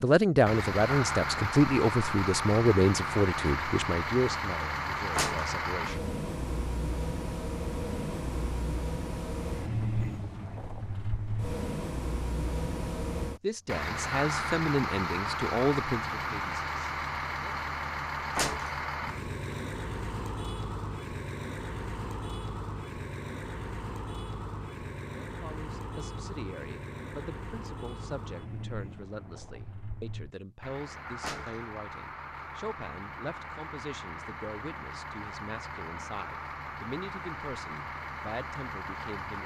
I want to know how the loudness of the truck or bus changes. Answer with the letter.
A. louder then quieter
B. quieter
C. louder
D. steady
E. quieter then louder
B.